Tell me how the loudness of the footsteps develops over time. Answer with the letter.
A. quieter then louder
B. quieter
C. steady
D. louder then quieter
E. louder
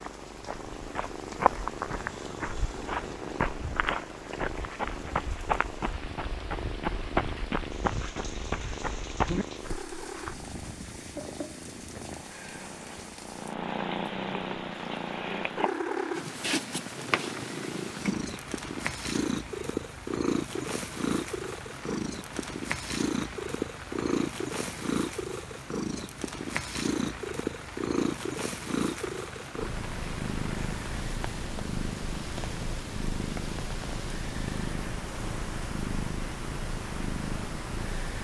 C.